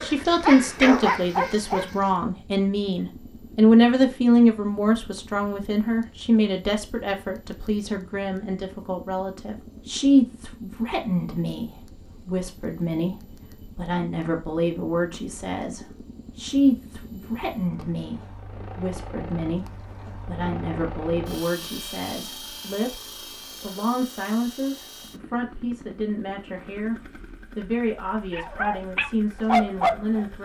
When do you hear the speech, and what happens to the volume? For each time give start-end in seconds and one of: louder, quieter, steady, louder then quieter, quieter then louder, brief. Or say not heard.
0.0-30.4 quieter.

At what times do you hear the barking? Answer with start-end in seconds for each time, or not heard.
0.0-1.9, 28.3-30.2.